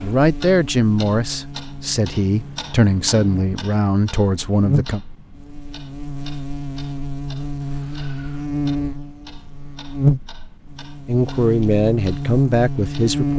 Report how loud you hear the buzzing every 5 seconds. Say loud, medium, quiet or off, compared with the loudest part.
medium, medium, loud.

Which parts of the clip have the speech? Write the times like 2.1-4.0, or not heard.
0.0-5.0, 11.1-13.3.